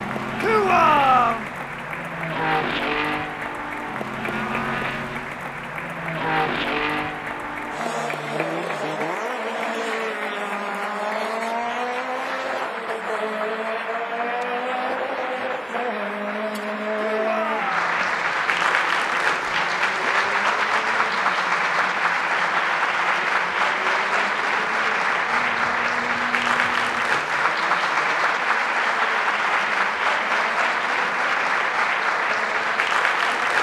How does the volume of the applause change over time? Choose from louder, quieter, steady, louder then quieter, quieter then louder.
louder.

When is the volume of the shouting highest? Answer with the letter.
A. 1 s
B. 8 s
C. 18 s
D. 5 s
A.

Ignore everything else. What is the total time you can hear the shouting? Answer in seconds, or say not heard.
2 s.